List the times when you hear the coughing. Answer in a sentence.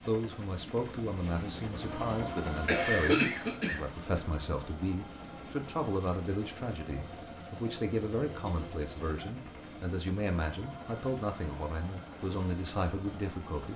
The coughing can be heard from 2.0 to 3.8 s.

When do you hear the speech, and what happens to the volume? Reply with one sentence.
You can hear the speech from 0.0 to 13.7 s, at a steady volume.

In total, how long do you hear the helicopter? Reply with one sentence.
The helicopter can be heard for 14 seconds in total.